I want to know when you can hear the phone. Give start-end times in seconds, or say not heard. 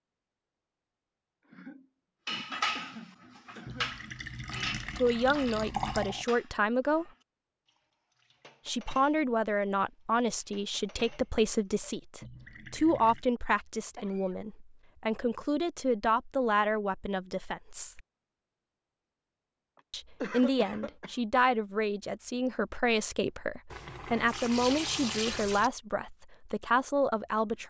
not heard.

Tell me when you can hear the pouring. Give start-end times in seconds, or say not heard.
3.6-6.2, 12.2-13.2, 23.7-25.7.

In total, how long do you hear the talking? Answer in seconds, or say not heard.
19 s.